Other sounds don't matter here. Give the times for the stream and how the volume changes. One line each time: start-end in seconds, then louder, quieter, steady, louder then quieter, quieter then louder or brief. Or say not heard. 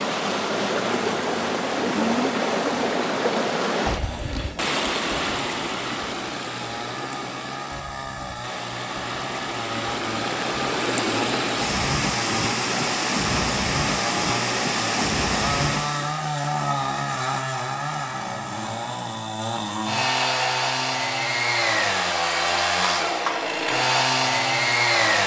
0.0-16.2 quieter then louder.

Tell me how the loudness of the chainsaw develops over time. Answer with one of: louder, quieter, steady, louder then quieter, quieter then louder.
louder.